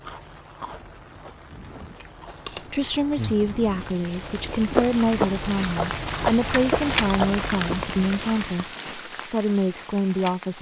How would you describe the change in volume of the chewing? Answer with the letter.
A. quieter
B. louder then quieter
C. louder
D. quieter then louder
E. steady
C.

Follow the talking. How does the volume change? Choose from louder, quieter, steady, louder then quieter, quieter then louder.
steady.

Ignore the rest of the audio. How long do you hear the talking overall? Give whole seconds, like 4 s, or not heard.
8 s.